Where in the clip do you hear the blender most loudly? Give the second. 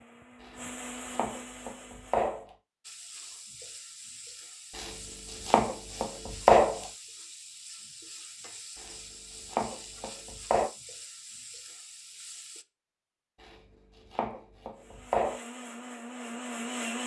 17 s.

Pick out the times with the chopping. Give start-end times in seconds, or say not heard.
0.4-2.5, 4.8-6.9, 8.8-10.7, 13.4-15.4.